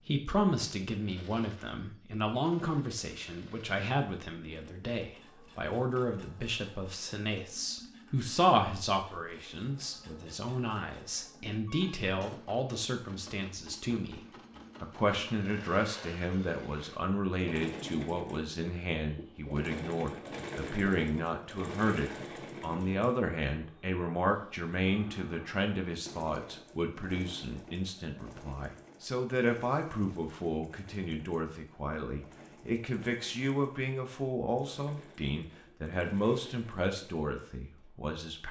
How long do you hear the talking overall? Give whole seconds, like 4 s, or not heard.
38 s.